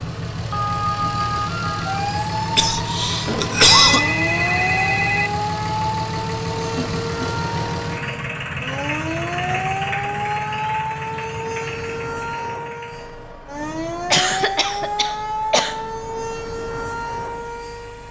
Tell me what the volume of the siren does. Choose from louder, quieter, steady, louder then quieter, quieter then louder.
steady.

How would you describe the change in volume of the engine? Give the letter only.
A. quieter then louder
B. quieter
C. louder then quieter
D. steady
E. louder
B.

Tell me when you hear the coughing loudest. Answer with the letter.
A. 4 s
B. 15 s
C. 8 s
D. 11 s
A.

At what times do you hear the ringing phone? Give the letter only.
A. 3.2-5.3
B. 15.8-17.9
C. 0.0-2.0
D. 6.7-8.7
A.